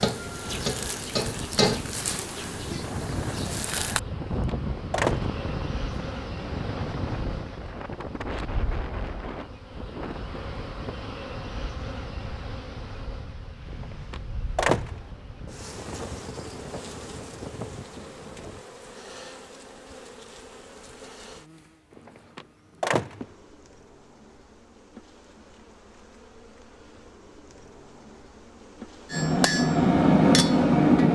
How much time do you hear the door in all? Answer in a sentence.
The door can be heard for 4 seconds in total.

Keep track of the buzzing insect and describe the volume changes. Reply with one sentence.
The volume of the buzzing insect goes down.